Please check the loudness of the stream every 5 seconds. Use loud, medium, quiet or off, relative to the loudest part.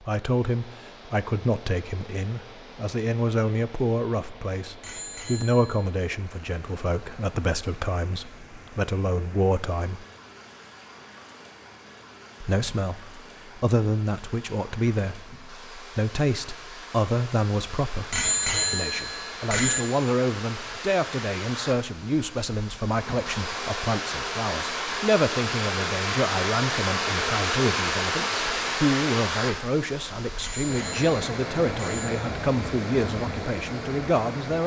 quiet, quiet, quiet, quiet, medium, loud, medium.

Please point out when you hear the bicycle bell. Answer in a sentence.
The bicycle bell can be heard from 4.8 to 5.8 s, from 18.1 to 19.8 s and from 30.4 to 32.1 s.